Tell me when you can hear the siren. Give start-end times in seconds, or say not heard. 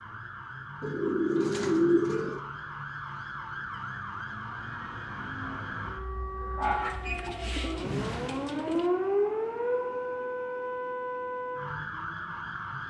0.0-12.8.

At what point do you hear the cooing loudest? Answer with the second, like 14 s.
2 s.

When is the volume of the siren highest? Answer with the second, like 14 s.
9 s.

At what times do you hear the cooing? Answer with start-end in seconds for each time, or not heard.
0.8-2.4, 6.6-8.9.